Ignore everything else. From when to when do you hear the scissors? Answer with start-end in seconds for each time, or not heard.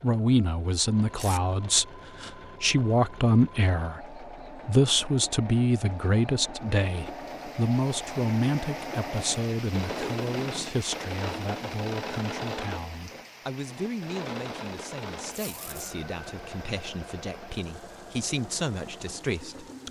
not heard.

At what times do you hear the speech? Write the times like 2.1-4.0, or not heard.
0.0-19.8.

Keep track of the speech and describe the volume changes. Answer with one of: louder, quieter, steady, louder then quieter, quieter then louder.
quieter.